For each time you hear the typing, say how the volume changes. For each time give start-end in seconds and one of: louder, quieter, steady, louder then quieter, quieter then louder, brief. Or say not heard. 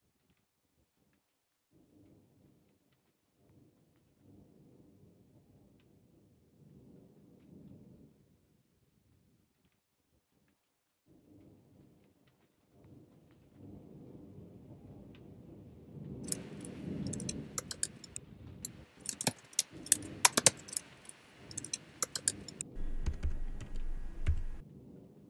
16.2-24.6 louder then quieter.